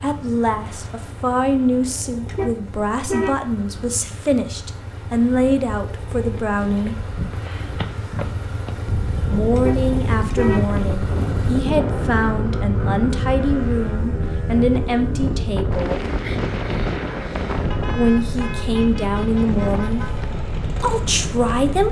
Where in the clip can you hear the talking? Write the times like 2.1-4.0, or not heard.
0.0-7.0, 9.3-16.0, 17.8-21.8.